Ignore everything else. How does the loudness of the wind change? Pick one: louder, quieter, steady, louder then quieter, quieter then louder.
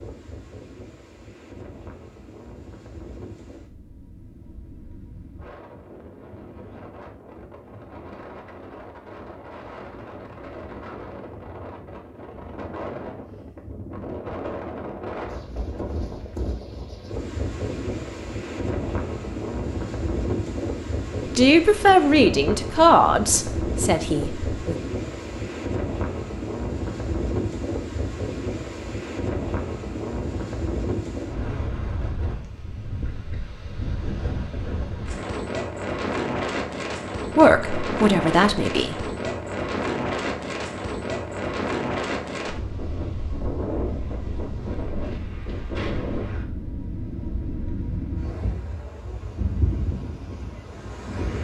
louder.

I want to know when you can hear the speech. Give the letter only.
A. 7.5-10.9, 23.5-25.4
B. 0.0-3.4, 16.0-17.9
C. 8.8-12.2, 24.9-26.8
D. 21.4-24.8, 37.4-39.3
D.